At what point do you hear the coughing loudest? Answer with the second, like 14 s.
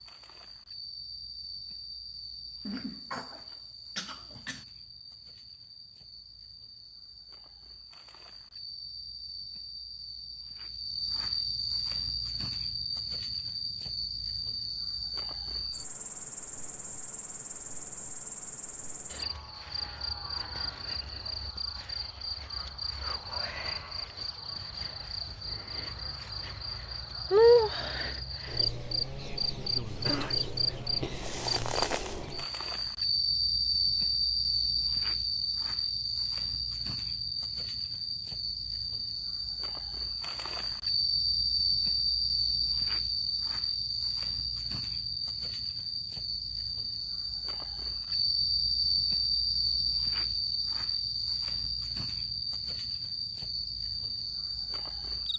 30 s.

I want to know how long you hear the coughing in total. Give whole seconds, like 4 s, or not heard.
3 s.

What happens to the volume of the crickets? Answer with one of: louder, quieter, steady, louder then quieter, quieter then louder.
louder.